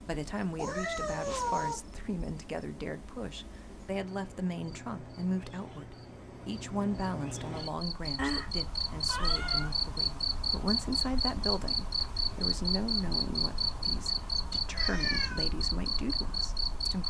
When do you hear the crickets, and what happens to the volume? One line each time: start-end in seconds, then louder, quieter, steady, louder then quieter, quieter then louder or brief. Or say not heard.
0.0-17.0 louder.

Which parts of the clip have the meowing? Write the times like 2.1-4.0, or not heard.
0.6-1.8, 8.2-9.7, 14.8-15.4.